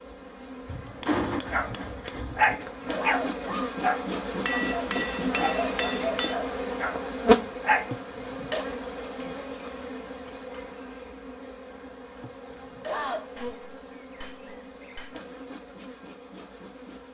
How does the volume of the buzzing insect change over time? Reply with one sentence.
The loudness of the buzzing insect goes up, then down.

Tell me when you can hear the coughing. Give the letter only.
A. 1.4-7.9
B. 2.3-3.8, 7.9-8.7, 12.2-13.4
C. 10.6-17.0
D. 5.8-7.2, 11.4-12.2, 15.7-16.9
B.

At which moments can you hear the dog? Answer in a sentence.
The dog can be heard from 1.4 to 7.9 s.